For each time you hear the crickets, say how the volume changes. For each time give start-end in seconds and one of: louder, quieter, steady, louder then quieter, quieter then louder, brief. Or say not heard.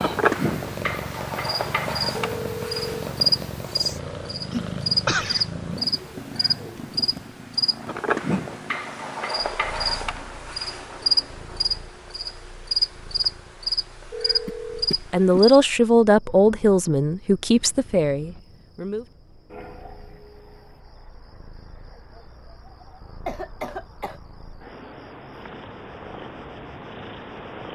0.0-27.7 quieter.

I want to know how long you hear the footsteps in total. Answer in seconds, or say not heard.
not heard.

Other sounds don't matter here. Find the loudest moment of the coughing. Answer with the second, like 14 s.
5 s.